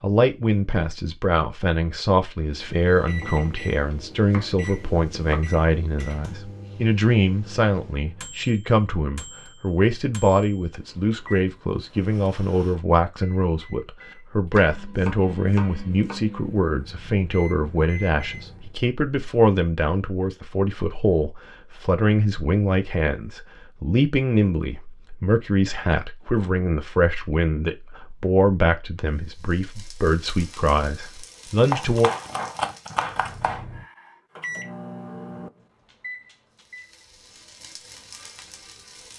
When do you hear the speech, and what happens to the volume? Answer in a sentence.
You can hear the speech from 0.0 to 32.1 s, at a steady volume.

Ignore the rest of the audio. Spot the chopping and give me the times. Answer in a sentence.
You can hear the chopping from 3.0 to 5.6 s, from 14.6 to 16.2 s and from 31.7 to 33.6 s.